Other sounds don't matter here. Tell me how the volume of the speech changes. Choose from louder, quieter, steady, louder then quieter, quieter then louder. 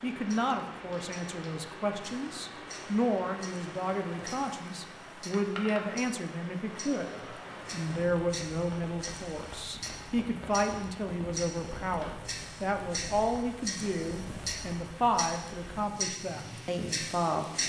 steady.